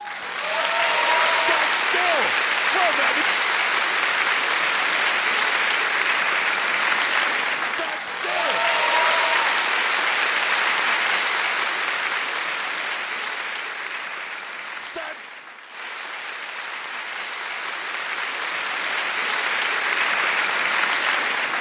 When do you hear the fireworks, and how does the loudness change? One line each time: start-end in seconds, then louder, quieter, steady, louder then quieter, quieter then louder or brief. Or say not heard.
not heard.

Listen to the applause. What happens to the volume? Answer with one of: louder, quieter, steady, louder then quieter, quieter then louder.
quieter then louder.